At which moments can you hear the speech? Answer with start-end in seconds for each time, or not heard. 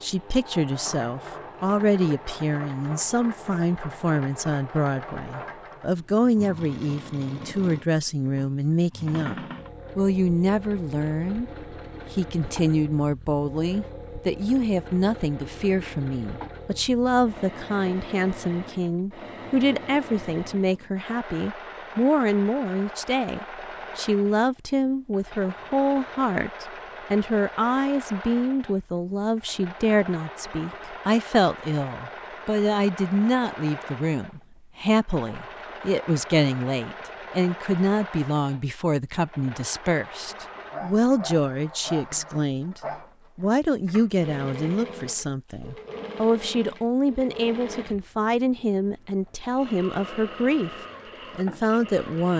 0.0-9.3, 9.9-11.5, 12.1-50.7, 51.4-52.3.